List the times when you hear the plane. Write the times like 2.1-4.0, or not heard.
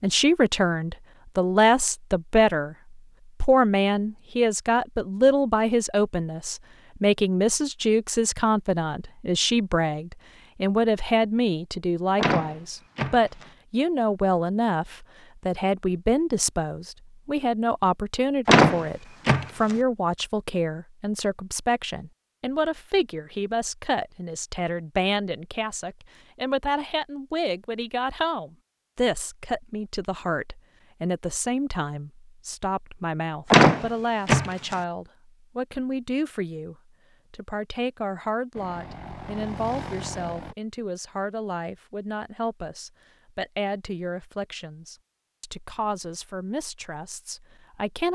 38.5-40.5.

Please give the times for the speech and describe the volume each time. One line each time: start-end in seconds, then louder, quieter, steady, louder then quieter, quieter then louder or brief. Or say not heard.
0.0-2.8 brief
3.4-48.1 quieter.